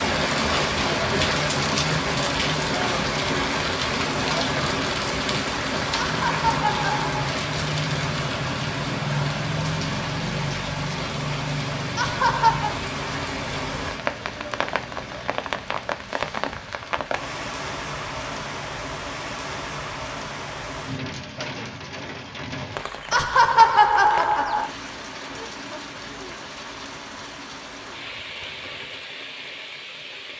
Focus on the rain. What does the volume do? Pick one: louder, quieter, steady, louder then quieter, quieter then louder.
quieter.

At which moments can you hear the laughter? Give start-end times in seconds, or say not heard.
6.0-7.3, 11.9-12.8, 23.1-24.7.